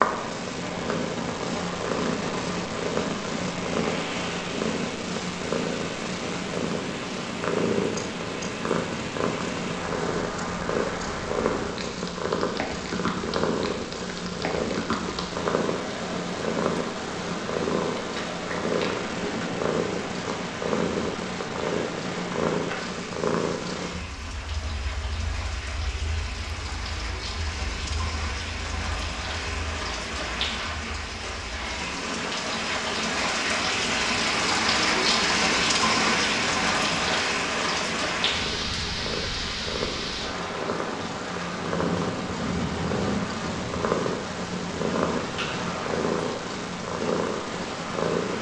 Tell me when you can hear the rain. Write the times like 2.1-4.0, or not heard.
0.0-48.3.